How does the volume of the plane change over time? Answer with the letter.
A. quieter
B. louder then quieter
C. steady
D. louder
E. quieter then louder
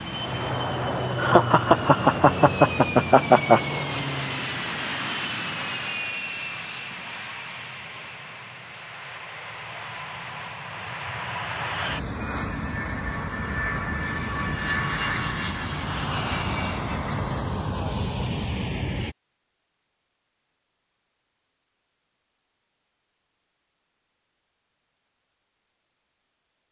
E.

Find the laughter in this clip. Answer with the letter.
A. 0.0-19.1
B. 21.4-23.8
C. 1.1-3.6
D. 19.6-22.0
C.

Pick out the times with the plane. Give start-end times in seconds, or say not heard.
0.0-19.1.